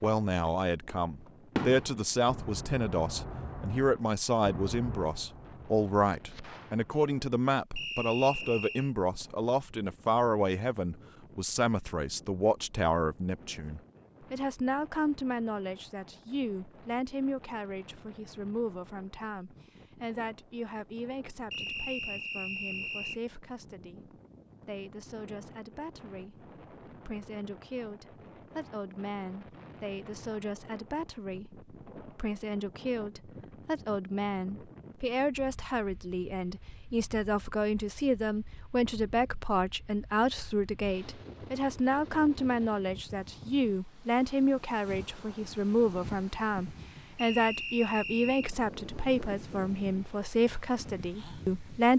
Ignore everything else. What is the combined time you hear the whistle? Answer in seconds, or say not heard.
4 s.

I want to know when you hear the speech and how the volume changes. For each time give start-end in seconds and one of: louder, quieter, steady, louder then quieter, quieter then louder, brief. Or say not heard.
0.0-51.9 quieter then louder.